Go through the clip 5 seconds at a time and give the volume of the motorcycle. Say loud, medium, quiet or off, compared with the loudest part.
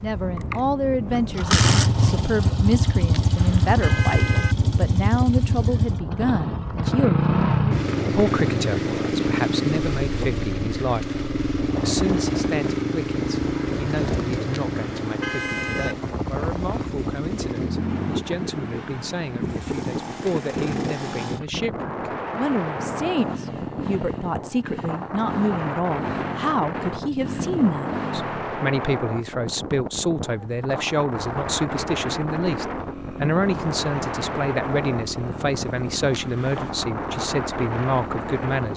loud, loud, loud, medium, medium, medium, quiet, quiet.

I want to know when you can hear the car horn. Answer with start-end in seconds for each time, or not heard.
3.1-4.5, 14.6-15.9, 36.1-36.8.